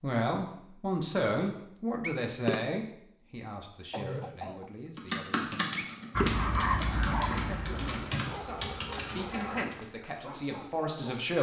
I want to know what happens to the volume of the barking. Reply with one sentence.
The loudness of the barking goes down.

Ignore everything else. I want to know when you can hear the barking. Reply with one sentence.
You can hear the barking from 6.2 to 11.3 s.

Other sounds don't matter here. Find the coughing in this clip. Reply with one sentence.
The coughing can be heard from 3.9 to 4.7 s.